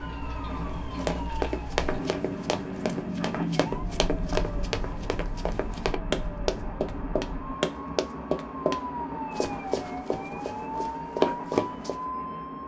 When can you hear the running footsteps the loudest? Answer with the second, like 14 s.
11 s.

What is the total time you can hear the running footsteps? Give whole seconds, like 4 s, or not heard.
11 s.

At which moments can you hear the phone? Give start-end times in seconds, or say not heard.
not heard.